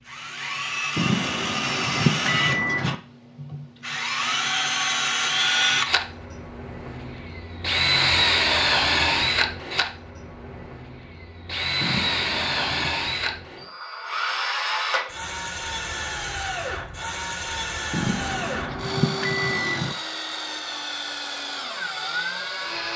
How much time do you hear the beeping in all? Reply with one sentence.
The beeping can be heard for 5 seconds in total.